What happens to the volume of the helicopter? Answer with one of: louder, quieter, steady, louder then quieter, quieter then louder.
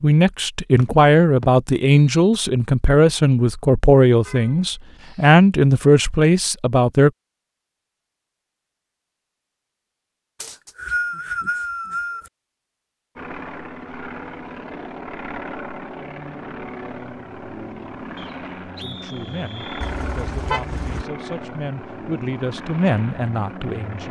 steady.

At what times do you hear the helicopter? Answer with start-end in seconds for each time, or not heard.
13.2-24.0.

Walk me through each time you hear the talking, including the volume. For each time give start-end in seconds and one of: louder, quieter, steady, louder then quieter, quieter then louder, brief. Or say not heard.
0.0-7.1 steady
18.8-24.0 louder.